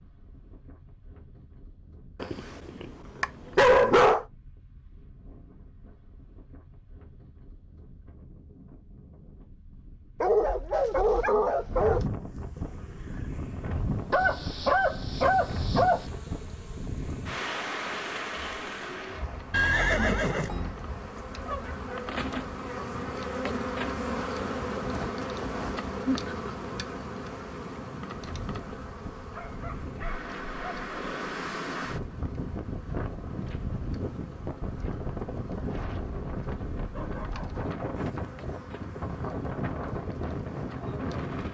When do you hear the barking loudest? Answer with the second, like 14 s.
4 s.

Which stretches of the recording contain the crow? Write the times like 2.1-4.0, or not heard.
not heard.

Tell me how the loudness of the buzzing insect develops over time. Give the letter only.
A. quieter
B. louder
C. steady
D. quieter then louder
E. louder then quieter
E.